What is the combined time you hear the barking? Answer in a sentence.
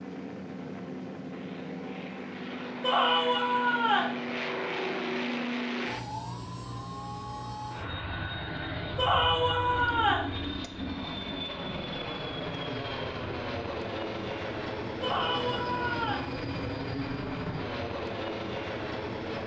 You can't hear the barking here.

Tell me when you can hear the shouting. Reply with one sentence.
The shouting can be heard from 2.8 to 4.2 s, from 8.9 to 10.3 s and from 15.0 to 16.2 s.